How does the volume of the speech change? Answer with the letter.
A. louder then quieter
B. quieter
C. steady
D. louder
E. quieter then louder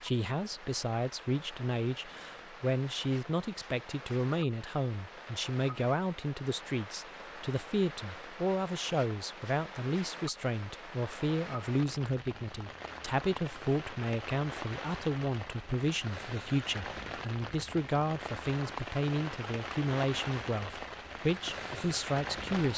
C.